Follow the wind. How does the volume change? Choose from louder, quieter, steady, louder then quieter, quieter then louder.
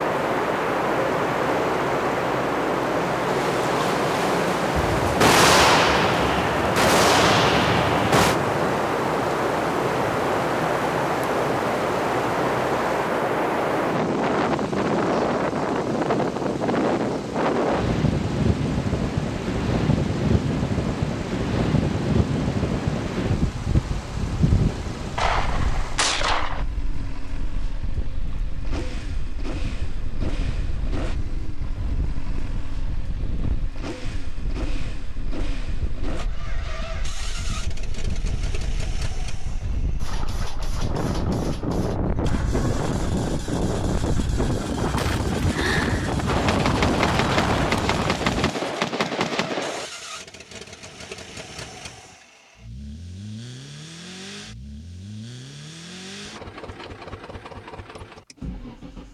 quieter then louder.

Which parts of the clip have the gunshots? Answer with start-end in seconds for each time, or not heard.
4.8-8.3, 25.1-26.6, 46.2-49.9.